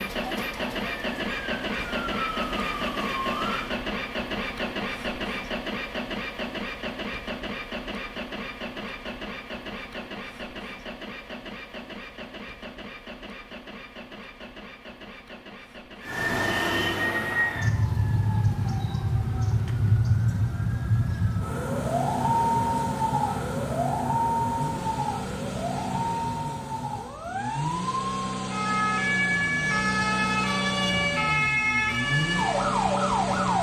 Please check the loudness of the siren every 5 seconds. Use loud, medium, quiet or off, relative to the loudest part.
medium, off, off, loud, loud, loud, loud.